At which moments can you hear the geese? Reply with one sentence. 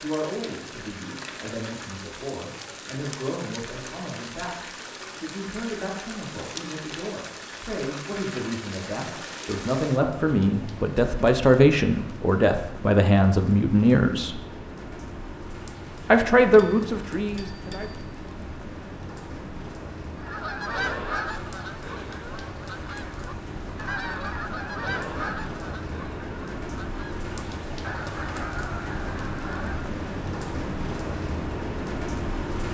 You can hear the geese from 20.1 to 29.9 s.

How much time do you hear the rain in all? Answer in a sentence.
You can hear the rain for 33 seconds altogether.